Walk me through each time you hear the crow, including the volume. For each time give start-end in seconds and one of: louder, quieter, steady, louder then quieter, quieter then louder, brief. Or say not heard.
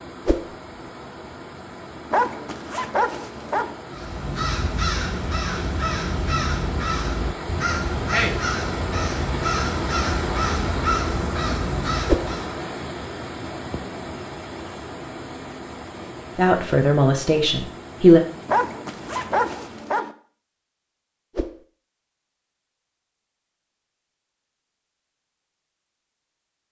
3.9-12.5 steady.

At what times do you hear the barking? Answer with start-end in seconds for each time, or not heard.
2.1-3.8, 18.4-20.1.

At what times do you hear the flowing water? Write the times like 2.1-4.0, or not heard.
0.0-20.0.